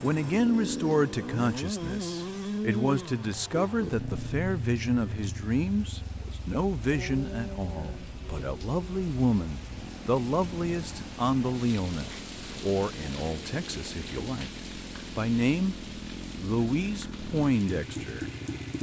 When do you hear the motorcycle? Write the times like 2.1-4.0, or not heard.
0.0-18.7.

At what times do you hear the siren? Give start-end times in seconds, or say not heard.
not heard.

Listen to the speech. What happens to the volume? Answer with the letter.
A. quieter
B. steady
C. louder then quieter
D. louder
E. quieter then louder
B.